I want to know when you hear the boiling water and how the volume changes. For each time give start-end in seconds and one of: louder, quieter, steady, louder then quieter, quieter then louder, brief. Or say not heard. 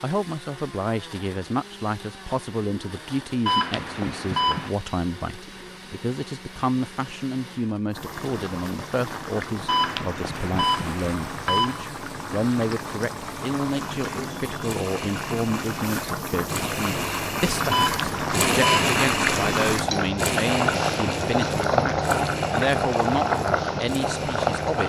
7.9-24.8 louder.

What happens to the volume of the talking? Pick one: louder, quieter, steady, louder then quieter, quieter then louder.
steady.